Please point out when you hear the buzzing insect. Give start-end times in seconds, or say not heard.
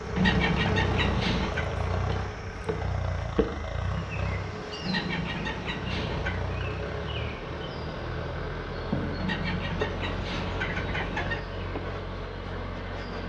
0.0-13.2.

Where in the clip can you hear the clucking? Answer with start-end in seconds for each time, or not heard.
0.1-1.7, 4.8-6.5, 9.2-11.4.